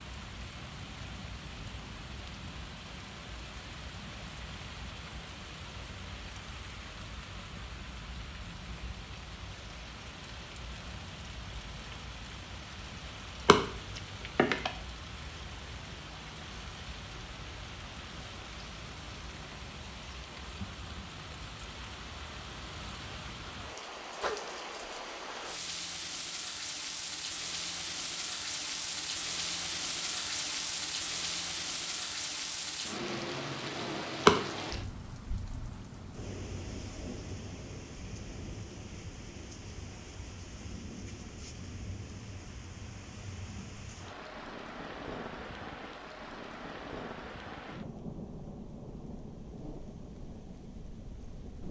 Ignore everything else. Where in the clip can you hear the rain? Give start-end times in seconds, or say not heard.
0.0-51.6.